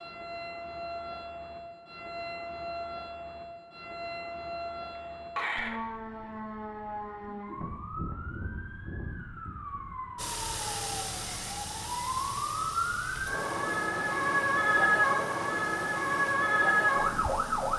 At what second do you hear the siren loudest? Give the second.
15 s.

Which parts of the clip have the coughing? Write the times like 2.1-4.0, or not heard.
5.0-5.8.